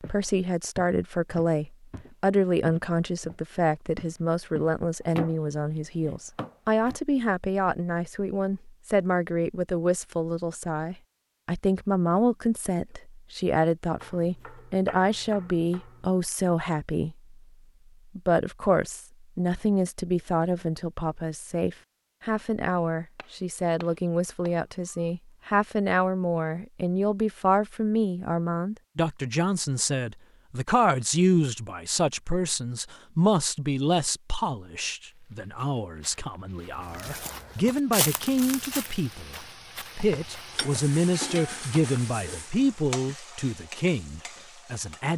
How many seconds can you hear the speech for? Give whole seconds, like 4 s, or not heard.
44 s.